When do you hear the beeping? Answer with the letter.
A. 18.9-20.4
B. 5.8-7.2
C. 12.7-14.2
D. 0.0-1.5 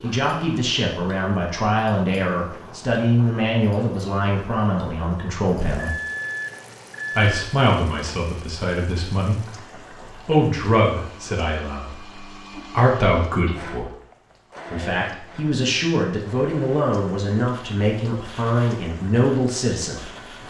B.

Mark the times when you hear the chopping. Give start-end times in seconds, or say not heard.
not heard.